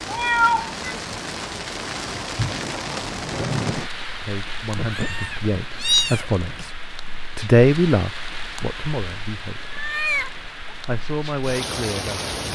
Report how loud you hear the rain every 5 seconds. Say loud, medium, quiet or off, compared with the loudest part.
loud, medium, loud.